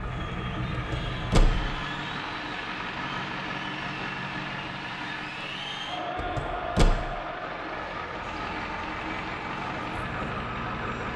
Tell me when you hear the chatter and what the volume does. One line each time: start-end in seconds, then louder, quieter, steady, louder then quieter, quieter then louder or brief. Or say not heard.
0.0-11.1 louder then quieter.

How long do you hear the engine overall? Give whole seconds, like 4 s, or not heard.
11 s.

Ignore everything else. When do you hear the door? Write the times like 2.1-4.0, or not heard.
0.7-1.8, 6.2-7.0.